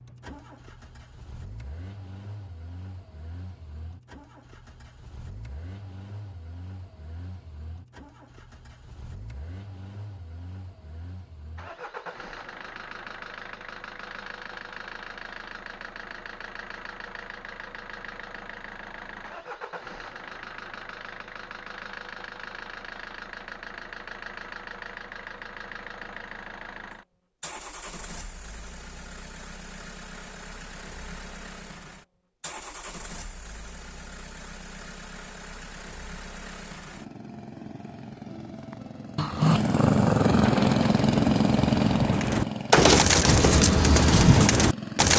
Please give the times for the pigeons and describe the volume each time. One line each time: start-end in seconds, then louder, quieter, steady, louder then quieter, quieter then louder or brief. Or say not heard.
40.2-45.1 louder.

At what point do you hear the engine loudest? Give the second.
41 s.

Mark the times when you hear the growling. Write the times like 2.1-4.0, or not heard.
39.1-40.6.